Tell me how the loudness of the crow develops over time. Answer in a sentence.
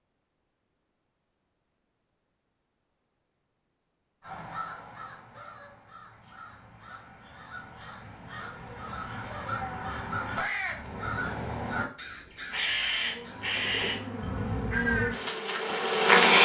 The loudness of the crow goes up.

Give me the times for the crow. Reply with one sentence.
You can hear the crow from 4.2 to 15.2 s.